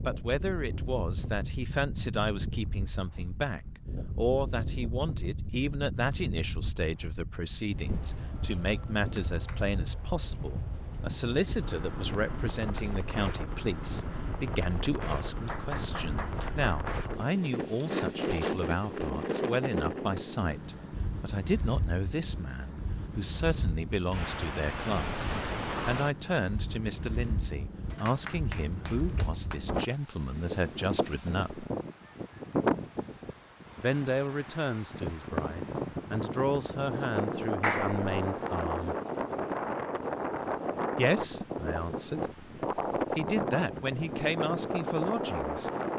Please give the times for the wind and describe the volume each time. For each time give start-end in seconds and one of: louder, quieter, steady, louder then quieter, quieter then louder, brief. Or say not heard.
0.0-45.9 louder.